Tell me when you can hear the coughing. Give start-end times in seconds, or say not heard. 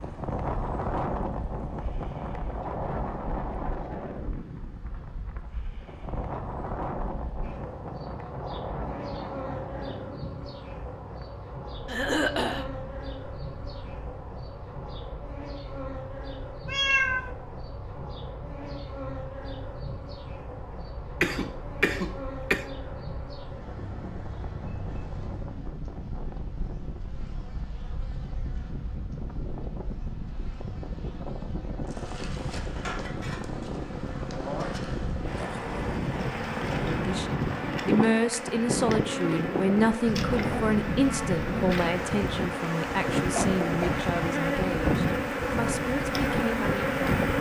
11.8-12.7, 21.2-22.6, 43.4-44.0.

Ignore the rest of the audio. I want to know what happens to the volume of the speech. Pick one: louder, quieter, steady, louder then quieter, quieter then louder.
quieter.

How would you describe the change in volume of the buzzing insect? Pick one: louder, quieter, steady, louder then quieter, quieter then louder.
louder.